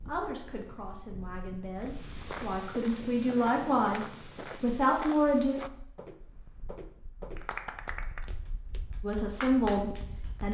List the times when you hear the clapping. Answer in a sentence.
The clapping can be heard from 7.3 to 10.4 s.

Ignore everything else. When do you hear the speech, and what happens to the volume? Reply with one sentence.
The speech can be heard from 0.1 to 5.5 s, getting louder; and briefly from 9.0 to 10.4 s.